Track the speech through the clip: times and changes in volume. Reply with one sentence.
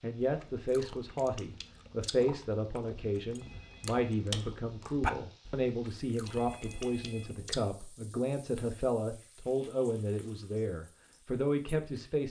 The speech can be heard from 0.0 to 12.2 s, at a steady volume.